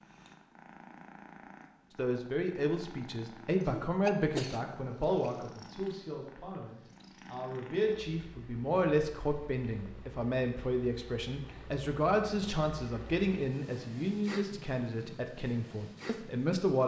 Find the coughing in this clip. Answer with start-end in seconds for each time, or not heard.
3.6-5.1.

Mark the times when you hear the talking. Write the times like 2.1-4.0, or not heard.
1.9-16.8.